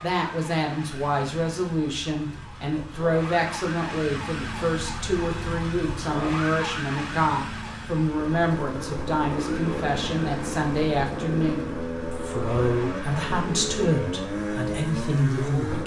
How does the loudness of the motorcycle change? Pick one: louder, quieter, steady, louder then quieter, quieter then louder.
steady.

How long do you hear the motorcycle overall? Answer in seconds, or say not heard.
8 s.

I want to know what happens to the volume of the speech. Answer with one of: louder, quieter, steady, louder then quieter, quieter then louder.
steady.